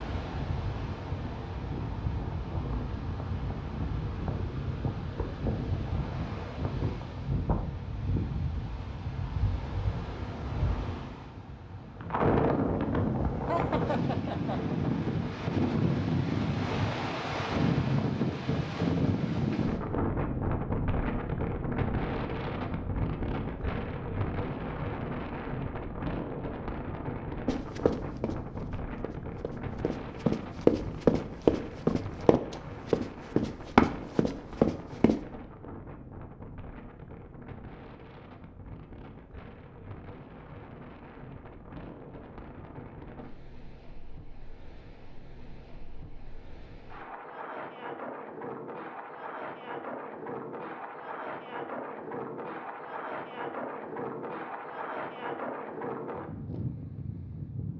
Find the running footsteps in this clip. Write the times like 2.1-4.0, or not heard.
27.4-35.2.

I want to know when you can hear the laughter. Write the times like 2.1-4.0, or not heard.
13.4-14.6.